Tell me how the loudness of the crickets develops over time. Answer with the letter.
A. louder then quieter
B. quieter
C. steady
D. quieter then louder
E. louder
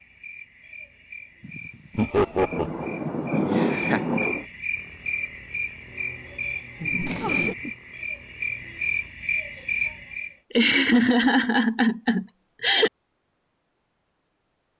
E.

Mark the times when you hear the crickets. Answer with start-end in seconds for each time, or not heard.
0.0-10.3.